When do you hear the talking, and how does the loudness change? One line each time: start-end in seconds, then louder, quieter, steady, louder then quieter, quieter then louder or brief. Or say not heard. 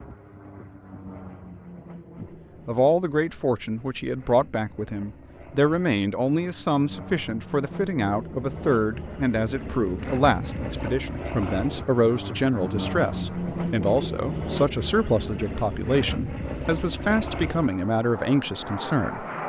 2.2-19.2 steady.